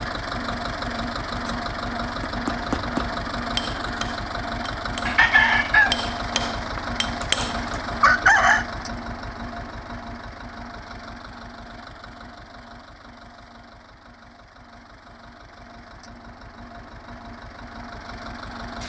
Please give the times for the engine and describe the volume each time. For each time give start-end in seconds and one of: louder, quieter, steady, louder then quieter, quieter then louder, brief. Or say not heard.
0.0-18.8 quieter.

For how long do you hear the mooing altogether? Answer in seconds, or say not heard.
not heard.